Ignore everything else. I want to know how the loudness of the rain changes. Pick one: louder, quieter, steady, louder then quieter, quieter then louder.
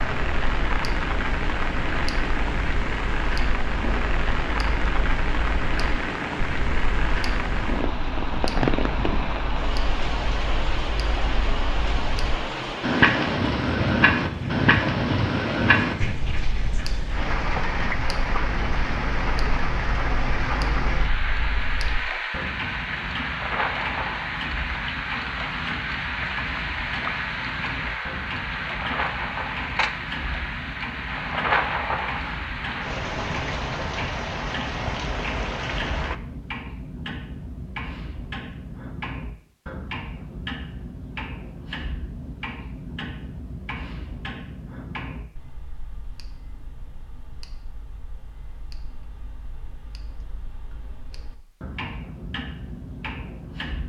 steady.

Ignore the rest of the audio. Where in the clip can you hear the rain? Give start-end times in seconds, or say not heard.
0.0-36.1.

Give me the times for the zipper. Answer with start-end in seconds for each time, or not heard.
not heard.